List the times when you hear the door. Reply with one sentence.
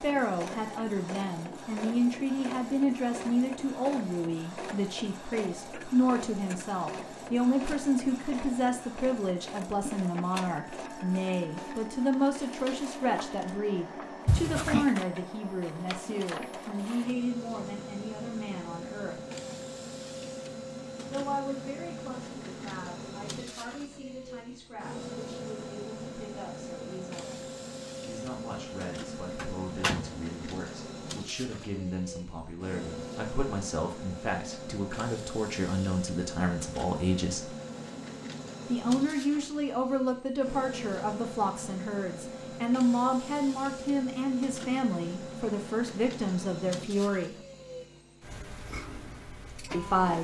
You can hear the door from 14.2 to 14.8 s and from 29.4 to 30.1 s.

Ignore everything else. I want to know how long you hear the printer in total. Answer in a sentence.
The printer can be heard for 50 seconds in total.